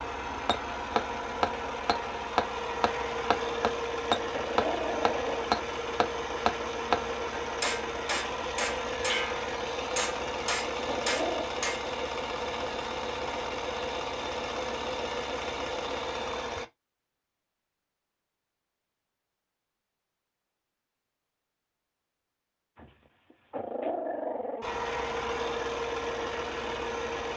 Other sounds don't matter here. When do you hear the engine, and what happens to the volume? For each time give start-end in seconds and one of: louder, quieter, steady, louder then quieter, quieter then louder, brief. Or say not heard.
0.0-16.6 steady
24.6-27.3 brief.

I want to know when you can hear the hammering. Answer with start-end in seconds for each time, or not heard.
0.5-11.8.